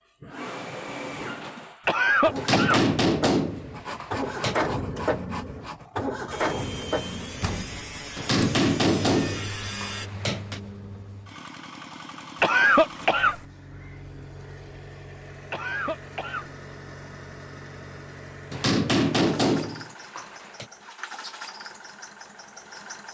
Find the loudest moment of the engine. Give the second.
5 s.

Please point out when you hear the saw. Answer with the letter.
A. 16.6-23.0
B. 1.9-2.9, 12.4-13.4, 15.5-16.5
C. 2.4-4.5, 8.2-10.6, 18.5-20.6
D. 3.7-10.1
D.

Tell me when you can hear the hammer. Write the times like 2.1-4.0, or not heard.
2.4-4.5, 8.2-10.6, 18.5-20.6.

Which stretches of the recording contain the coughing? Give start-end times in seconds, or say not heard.
1.9-2.9, 12.4-13.4, 15.5-16.5.